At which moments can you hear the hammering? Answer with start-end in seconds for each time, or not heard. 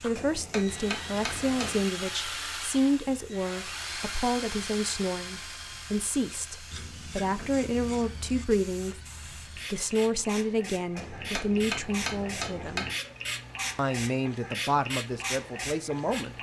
0.1-1.9, 10.9-12.9.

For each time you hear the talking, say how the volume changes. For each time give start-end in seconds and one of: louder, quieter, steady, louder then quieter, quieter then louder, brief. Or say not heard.
0.0-12.8 steady
13.8-16.3 brief.